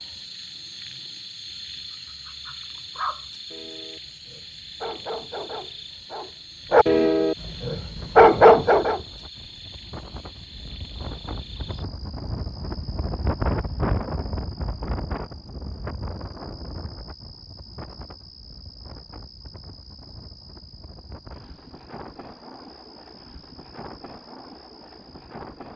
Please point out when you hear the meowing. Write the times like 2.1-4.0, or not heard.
not heard.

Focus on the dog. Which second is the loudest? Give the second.
8 s.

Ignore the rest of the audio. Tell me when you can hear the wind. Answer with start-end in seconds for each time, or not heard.
7.8-25.7.